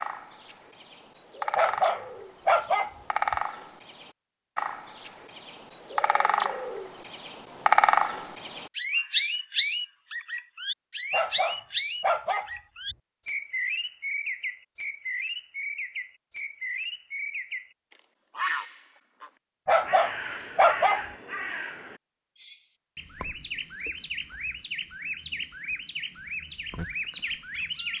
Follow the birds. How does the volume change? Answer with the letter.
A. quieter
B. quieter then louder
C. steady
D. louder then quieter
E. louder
D.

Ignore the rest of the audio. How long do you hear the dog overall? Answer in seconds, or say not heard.
5 s.